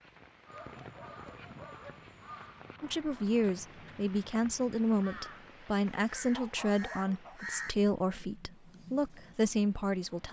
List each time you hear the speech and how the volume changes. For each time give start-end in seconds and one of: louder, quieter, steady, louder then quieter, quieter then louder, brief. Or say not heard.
2.8-10.2 steady.